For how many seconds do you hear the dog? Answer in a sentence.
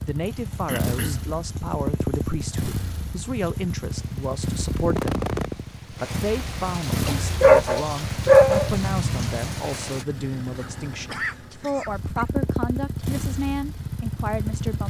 You can hear the dog for 2 seconds altogether.